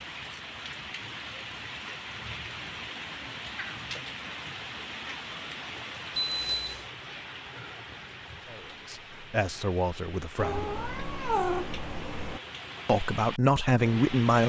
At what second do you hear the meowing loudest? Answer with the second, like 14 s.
11 s.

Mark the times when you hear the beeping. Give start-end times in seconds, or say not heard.
6.2-6.8.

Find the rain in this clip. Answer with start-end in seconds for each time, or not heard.
0.0-14.4.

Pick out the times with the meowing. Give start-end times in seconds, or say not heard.
3.5-4.0, 10.3-12.4.